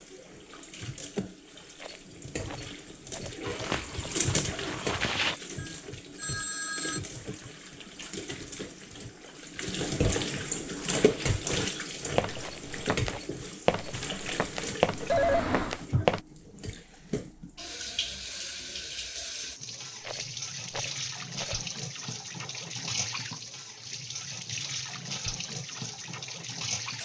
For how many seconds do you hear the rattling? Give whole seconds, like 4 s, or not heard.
5 s.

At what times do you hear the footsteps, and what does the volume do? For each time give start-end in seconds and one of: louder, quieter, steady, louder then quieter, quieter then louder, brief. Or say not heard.
3.5-5.3 brief
10.8-16.2 louder then quieter.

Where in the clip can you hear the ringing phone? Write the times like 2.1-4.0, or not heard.
5.5-7.0, 15.1-15.8.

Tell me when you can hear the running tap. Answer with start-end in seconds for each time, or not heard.
0.0-27.0.